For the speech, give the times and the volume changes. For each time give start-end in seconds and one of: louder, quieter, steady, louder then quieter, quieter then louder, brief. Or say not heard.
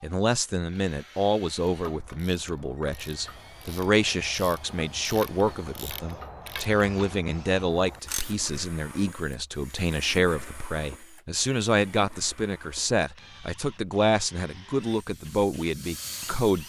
0.0-16.6 steady.